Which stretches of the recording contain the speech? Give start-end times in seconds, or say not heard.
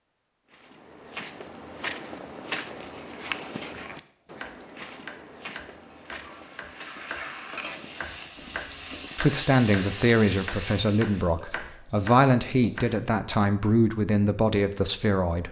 9.2-15.4.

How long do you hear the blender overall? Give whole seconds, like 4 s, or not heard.
not heard.